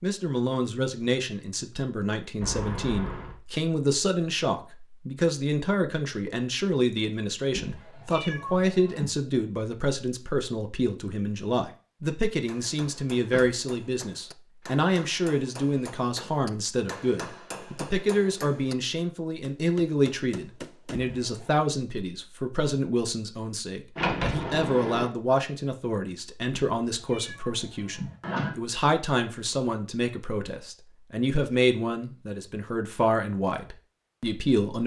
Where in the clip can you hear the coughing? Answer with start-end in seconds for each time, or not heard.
not heard.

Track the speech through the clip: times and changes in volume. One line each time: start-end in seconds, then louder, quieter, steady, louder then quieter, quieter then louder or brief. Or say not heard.
0.0-34.8 steady.